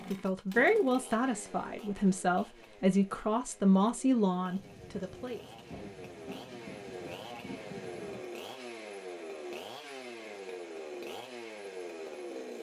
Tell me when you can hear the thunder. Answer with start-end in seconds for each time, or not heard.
4.5-8.3.